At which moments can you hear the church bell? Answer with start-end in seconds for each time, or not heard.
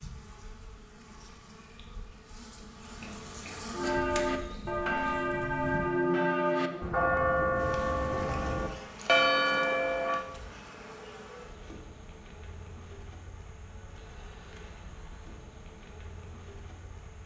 3.7-10.2.